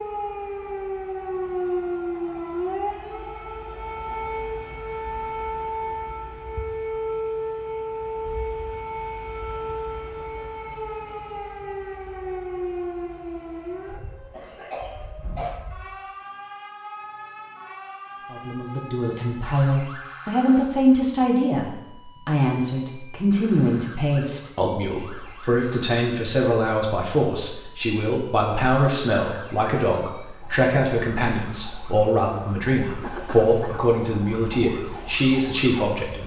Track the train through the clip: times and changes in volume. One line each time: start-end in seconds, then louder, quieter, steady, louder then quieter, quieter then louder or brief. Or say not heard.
not heard.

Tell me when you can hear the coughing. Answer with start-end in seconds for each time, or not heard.
14.3-15.7, 33.0-33.8.